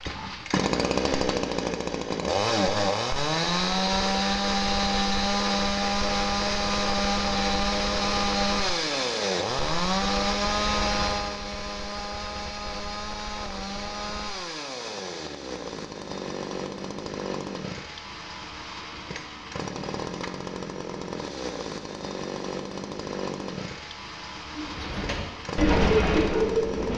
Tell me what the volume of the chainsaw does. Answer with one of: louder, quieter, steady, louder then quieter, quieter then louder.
quieter.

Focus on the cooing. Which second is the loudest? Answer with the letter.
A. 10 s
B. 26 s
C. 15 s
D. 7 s
B.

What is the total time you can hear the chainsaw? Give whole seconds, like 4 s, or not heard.
27 s.